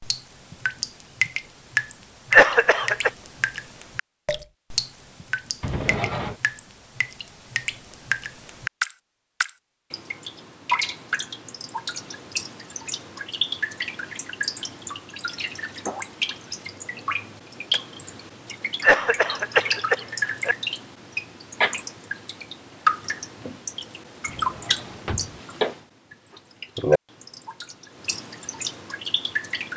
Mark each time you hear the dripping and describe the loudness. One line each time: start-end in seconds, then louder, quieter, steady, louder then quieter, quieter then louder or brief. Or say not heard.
0.0-29.7 steady.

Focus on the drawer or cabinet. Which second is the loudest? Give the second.
6 s.